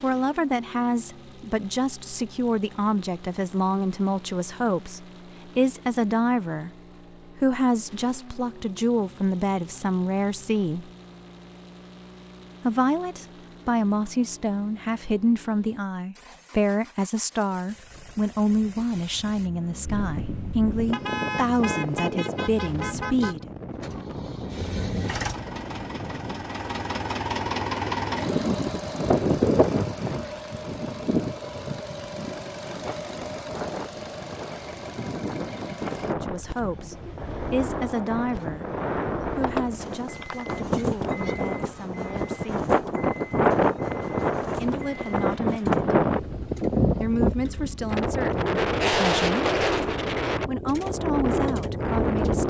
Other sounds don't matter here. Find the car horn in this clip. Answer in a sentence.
You can hear the car horn from 20.9 to 23.4 s.